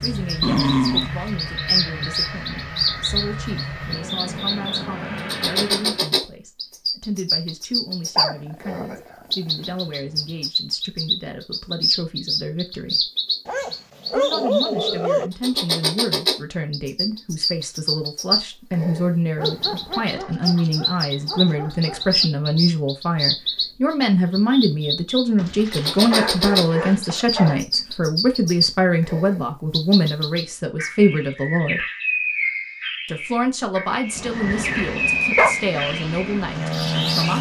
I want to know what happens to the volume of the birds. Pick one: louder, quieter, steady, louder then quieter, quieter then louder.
steady.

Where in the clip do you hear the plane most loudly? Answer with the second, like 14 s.
37 s.